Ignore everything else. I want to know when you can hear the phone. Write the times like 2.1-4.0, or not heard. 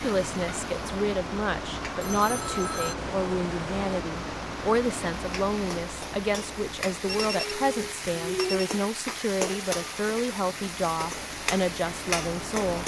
2.0-4.0, 7.0-8.7.